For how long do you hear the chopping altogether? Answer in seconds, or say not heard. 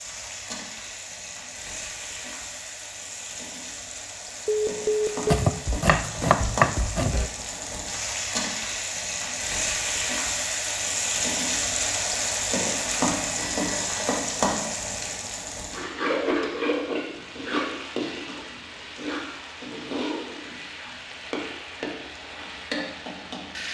2 s.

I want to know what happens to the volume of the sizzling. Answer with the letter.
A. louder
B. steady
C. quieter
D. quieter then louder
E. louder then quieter
E.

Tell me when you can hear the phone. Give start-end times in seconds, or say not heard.
4.5-5.5, 13.3-14.1.